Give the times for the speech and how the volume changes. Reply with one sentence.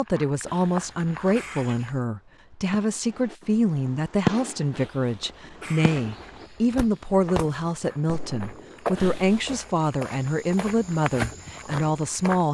The speech can be heard from 0.0 to 12.4 s, at a steady volume.